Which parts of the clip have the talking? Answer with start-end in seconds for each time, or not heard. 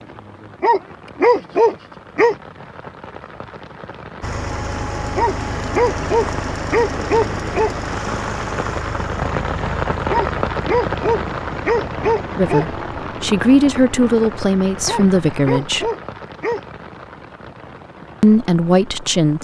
12.3-15.9, 18.2-19.4.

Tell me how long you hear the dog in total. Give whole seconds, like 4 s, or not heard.
9 s.